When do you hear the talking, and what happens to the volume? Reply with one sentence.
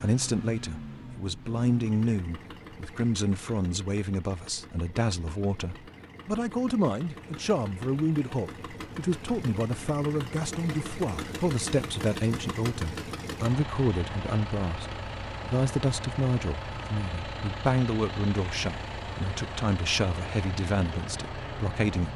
The talking can be heard from 0.0 to 22.1 s, at a steady volume.